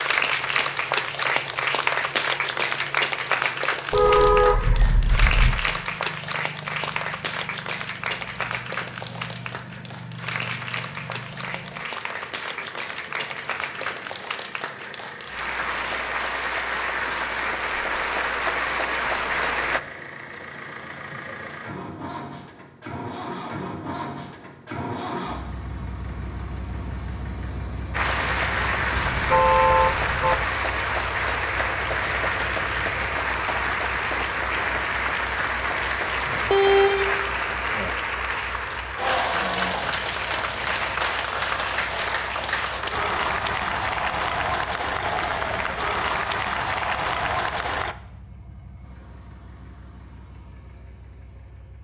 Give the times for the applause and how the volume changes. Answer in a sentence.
The applause can be heard from 0.0 to 19.8 s, getting quieter then louder; and from 27.9 to 48.0 s, at a steady volume.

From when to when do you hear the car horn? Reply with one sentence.
You can hear the car horn from 3.9 to 5.7 s, from 28.9 to 30.4 s and from 36.4 to 37.9 s.